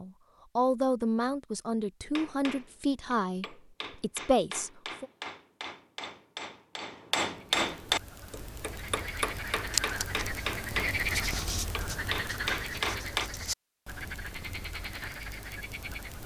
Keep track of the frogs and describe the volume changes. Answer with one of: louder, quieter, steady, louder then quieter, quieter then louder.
louder then quieter.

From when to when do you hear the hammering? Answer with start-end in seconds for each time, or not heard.
2.1-13.3.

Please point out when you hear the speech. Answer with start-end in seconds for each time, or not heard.
0.0-5.0.